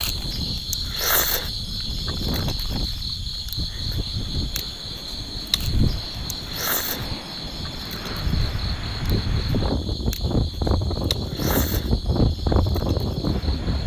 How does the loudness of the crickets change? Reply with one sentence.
The loudness of the crickets goes down.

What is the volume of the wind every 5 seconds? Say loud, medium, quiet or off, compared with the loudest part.
medium, medium, loud.